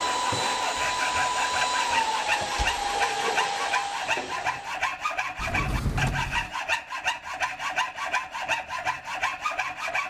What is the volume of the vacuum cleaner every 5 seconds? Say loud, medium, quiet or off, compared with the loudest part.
loud, off.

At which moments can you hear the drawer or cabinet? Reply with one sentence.
The drawer or cabinet can be heard from 1.9 to 2.9 s and from 5.3 to 6.5 s.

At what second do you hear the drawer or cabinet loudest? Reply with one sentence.
The loudest moment of the drawer or cabinet is at 6 seconds.